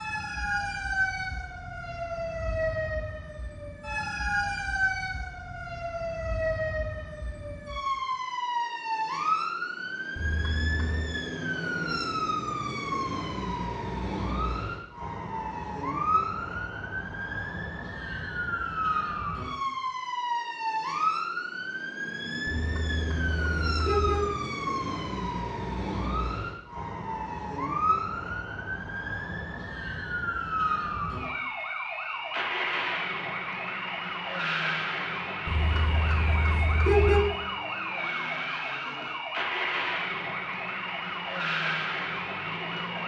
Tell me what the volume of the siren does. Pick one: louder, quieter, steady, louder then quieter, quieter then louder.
steady.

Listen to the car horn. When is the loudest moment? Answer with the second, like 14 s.
37 s.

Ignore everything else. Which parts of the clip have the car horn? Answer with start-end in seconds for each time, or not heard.
10.2-11.1, 22.4-24.3, 35.5-37.2.